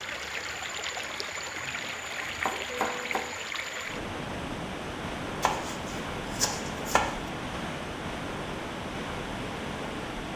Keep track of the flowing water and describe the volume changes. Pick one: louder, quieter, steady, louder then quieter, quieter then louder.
steady.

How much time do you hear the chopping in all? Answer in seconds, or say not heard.
3 s.